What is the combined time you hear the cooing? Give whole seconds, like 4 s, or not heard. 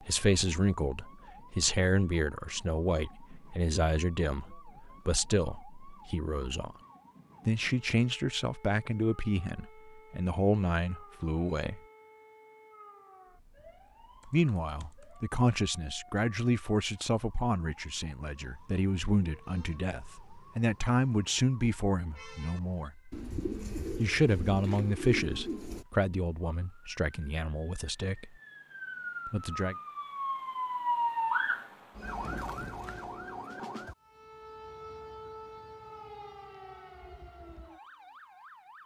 3 s.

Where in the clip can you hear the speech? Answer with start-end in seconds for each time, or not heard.
0.0-6.8, 7.5-11.8, 14.2-22.9, 23.9-28.3, 29.2-29.8.